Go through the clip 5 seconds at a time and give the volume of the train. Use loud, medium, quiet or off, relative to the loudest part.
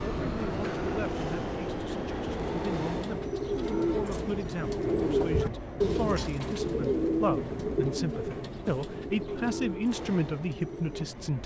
loud, medium, medium.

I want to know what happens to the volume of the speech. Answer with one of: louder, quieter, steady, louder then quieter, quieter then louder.
louder.